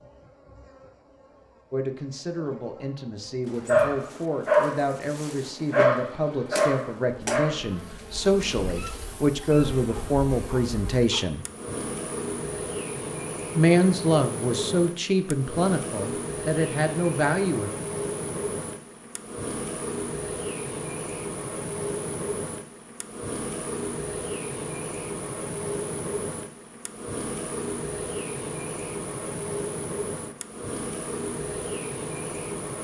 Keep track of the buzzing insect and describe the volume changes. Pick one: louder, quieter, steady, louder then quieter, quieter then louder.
louder.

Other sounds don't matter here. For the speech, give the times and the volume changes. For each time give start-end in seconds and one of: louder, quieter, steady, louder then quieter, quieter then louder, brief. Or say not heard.
1.7-11.4 louder
13.6-17.7 steady.